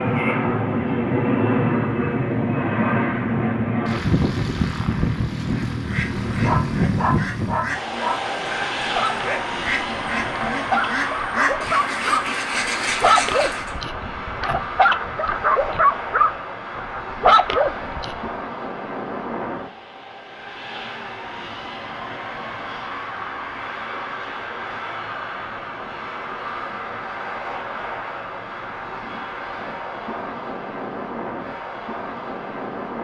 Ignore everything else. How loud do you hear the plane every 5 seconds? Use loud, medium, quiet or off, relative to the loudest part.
loud, loud, medium, medium, medium, medium, medium.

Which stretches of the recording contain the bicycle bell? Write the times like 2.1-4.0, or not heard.
not heard.